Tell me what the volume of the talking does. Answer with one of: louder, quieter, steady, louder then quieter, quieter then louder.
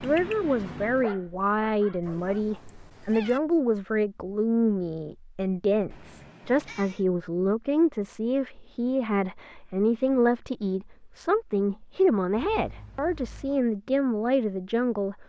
steady.